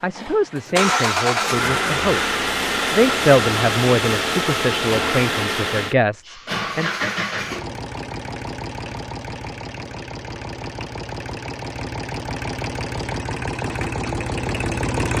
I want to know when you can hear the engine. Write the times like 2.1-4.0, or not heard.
0.0-15.1.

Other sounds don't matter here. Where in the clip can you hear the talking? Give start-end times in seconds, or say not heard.
0.0-7.1.